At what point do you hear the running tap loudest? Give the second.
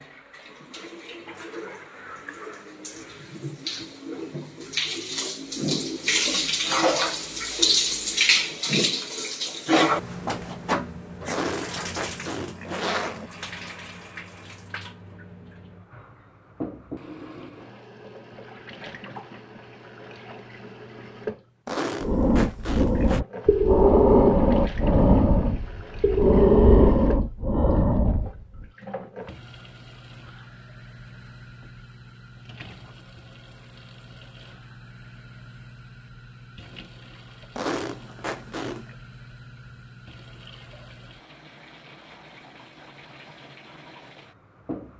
8 s.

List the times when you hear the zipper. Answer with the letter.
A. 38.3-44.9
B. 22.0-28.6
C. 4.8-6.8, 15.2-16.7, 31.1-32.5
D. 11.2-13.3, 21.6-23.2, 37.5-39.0
D.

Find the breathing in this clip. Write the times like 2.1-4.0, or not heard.
22.0-28.6.